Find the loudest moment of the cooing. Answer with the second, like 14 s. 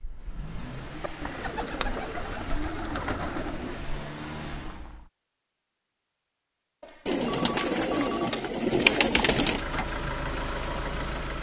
9 s.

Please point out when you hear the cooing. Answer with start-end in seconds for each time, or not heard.
1.0-3.8, 7.0-9.7.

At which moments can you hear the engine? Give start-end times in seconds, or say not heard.
0.0-5.1, 9.3-11.3.